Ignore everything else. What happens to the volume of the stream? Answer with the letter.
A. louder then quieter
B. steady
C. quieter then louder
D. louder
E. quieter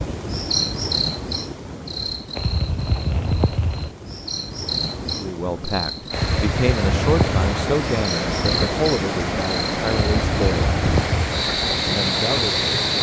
B.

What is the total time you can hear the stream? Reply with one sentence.
The stream can be heard for 7 seconds in total.